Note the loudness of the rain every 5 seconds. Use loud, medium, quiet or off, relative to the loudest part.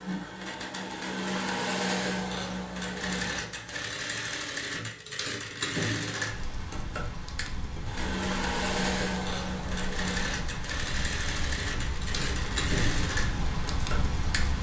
off, medium, loud.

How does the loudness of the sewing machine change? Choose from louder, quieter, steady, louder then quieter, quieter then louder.
steady.